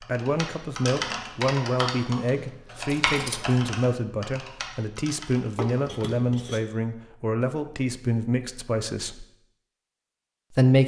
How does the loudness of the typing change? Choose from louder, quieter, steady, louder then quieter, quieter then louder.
quieter.